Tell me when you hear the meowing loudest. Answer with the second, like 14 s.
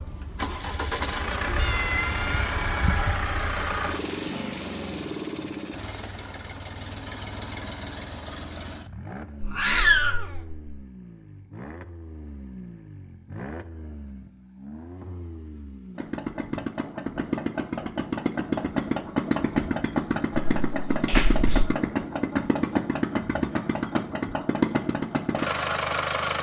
10 s.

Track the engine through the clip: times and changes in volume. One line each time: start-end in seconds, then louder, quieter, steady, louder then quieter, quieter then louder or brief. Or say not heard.
0.0-26.3 quieter then louder.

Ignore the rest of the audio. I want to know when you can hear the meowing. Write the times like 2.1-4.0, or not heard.
1.6-3.2, 9.4-10.6, 20.5-21.8.